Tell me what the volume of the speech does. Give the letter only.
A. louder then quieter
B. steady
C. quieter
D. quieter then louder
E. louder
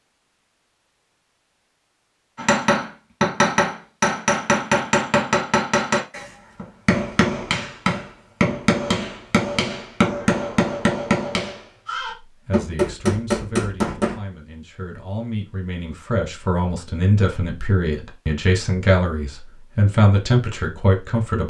E.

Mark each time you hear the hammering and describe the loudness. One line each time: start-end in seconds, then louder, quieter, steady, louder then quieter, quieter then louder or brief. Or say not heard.
2.4-14.2 steady.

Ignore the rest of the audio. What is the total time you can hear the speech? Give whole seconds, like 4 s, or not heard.
9 s.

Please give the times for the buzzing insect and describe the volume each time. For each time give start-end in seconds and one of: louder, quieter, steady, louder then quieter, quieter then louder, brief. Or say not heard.
not heard.